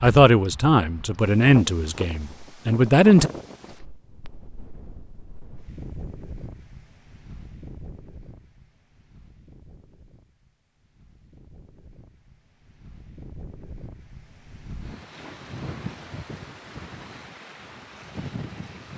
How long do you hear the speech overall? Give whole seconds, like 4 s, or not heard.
3 s.